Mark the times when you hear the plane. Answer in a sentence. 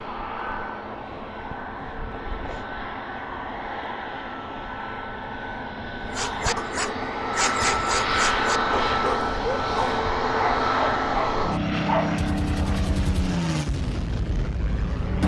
You can hear the plane from 0.0 to 15.2 s.